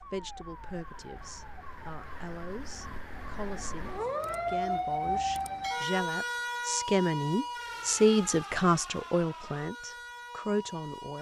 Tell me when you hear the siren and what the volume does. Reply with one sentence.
You can hear the siren from 0.0 to 11.1 s, getting louder then quieter.